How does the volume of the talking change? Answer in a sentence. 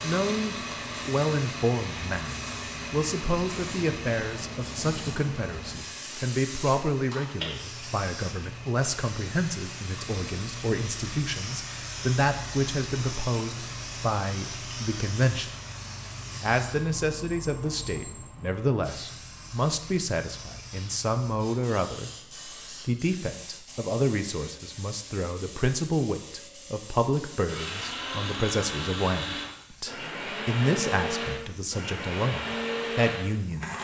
The volume of the talking stays about the same.